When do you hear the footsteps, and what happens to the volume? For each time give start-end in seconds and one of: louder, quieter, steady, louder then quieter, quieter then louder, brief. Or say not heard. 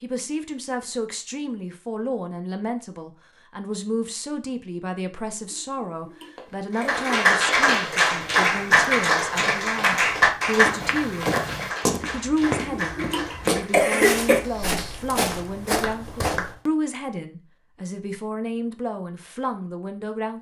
6.3-16.6 louder.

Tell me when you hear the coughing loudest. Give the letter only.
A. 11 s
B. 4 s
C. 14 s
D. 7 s
C.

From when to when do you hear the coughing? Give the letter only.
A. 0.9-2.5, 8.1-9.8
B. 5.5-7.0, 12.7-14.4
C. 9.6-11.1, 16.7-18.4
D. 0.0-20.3
B.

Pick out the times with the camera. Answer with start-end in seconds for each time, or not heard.
not heard.